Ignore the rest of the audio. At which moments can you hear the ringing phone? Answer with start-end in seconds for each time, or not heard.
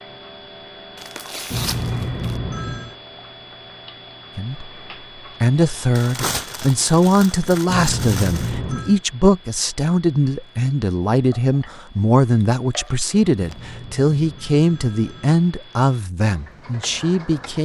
1.5-3.0, 7.7-9.0, 13.3-15.4.